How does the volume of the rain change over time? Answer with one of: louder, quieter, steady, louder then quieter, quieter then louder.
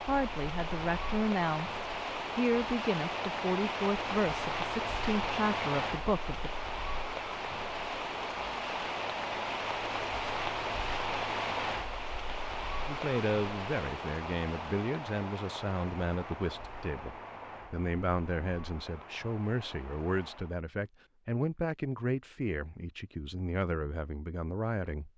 quieter.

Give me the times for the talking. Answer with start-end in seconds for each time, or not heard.
0.0-6.5, 12.8-25.1.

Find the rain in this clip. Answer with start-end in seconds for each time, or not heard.
0.0-20.6.